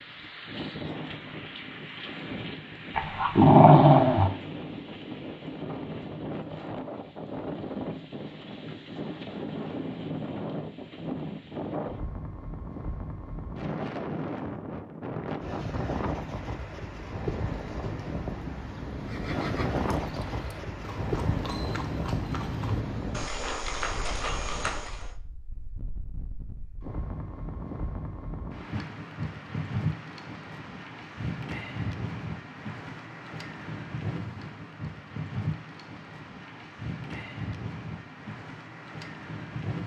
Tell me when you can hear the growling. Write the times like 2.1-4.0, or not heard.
3.0-4.3.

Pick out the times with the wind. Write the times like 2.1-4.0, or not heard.
0.0-39.8.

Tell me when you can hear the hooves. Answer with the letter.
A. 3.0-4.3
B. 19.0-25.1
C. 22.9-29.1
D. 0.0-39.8
B.